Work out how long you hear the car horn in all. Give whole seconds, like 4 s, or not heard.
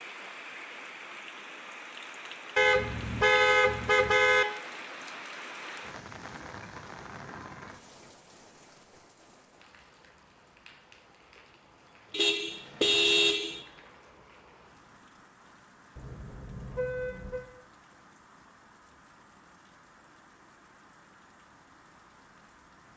5 s.